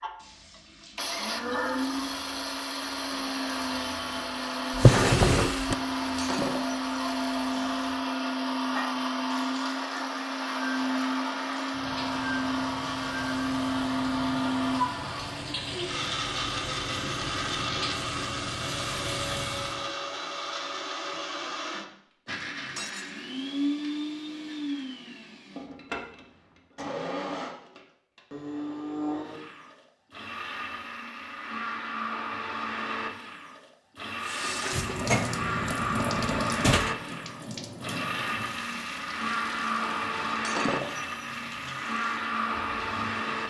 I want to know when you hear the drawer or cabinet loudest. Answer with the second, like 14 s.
5 s.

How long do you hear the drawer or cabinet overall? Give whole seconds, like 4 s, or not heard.
3 s.